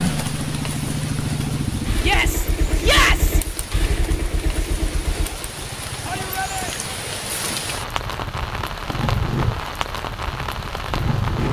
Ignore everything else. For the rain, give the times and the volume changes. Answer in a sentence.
The rain can be heard from 0.0 to 11.4 s, getting louder.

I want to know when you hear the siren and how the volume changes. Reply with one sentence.
The siren can't be heard in this clip.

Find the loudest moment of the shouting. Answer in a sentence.
The volume of the shouting peaks at 3 seconds.